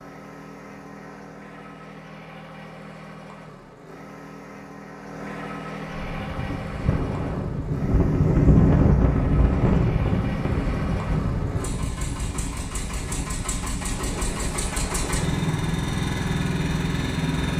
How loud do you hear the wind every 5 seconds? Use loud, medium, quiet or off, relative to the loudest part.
off, loud, medium, quiet.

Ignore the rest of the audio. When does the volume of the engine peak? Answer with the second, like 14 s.
16 s.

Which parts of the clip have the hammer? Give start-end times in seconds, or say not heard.
not heard.